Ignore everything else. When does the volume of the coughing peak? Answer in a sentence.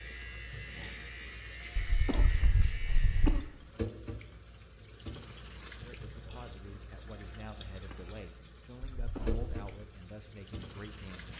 The loudest moment of the coughing is at 3 seconds.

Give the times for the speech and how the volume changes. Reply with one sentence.
You can hear the speech from 5.8 to 11.3 s, at a steady volume.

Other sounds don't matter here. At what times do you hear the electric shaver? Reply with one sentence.
You can hear the electric shaver from 0.0 to 3.5 s.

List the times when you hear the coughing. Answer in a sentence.
The coughing can be heard from 1.8 to 3.5 s and from 8.9 to 9.6 s.